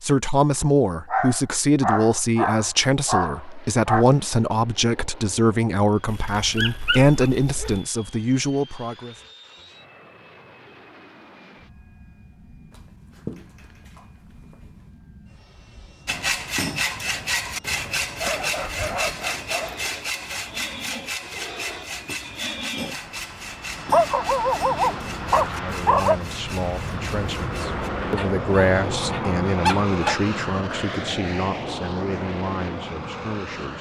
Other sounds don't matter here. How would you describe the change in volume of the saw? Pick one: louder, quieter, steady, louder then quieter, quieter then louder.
quieter.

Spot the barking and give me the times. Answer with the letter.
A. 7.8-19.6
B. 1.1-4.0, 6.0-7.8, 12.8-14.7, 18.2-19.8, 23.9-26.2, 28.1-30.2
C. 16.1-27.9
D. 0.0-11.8
B.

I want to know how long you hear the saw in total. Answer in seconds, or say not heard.
12 s.